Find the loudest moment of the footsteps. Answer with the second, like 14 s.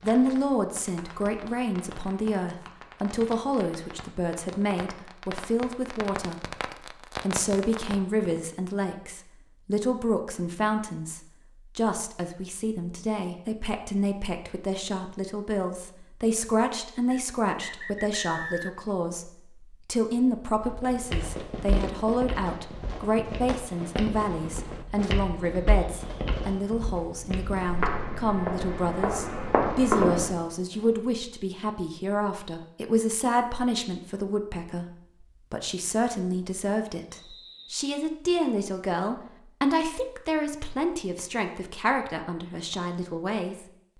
30 s.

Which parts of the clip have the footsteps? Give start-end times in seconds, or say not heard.
20.6-30.3.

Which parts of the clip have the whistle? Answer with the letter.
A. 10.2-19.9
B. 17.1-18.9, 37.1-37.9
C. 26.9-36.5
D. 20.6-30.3
B.